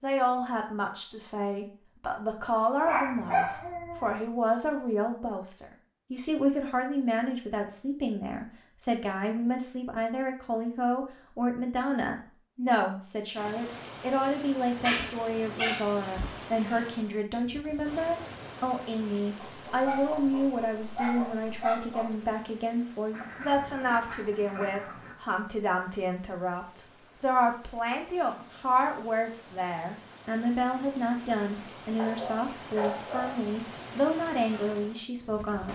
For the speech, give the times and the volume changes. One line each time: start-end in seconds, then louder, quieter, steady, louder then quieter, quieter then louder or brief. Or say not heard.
0.0-35.7 steady.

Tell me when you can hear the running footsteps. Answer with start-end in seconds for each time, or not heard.
not heard.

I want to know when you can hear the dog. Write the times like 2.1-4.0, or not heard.
2.9-4.2, 14.8-16.3, 19.4-22.1, 31.9-33.5.